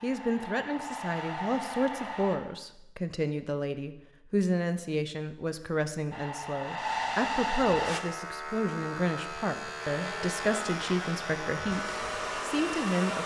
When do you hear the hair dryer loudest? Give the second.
7 s.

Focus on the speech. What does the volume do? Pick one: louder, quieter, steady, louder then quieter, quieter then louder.
steady.